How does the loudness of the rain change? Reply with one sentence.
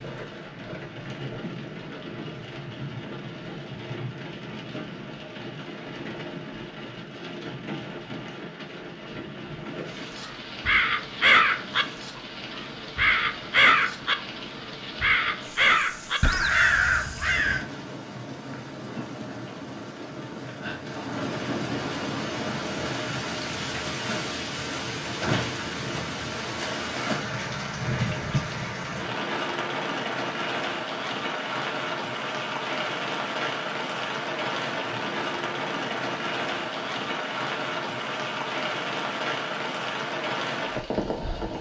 The loudness of the rain goes up.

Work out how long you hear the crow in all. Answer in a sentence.
You can hear the crow for 6 seconds altogether.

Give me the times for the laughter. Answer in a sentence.
The laughter can't be heard in this clip.